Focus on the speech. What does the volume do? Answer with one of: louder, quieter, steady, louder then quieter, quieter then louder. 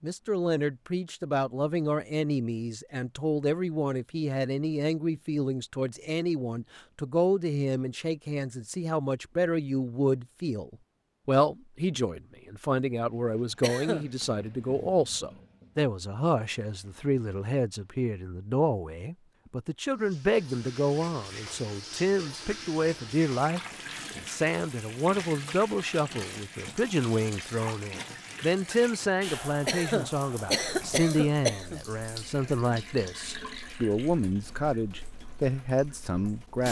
steady.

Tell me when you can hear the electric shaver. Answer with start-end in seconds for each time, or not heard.
not heard.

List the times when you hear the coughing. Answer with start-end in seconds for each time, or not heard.
13.6-14.1, 29.6-31.8.